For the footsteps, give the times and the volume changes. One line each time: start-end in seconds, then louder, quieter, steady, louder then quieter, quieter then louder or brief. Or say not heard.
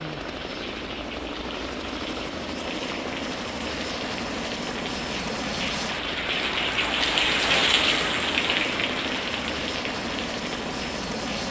not heard.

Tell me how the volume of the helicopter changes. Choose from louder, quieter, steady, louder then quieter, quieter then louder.
steady.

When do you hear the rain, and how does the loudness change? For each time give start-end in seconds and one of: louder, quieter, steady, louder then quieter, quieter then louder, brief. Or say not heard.
0.0-11.4 louder then quieter.